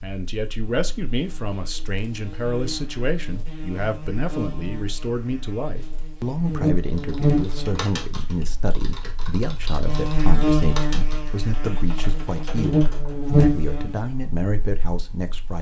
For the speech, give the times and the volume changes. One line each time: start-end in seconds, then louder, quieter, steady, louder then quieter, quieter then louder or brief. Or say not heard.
0.0-15.5 steady.